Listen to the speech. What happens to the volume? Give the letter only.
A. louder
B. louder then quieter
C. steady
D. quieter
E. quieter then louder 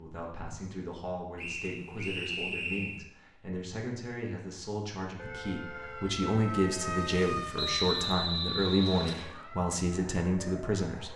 A.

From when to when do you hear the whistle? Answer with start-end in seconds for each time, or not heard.
1.4-3.0, 7.5-9.3.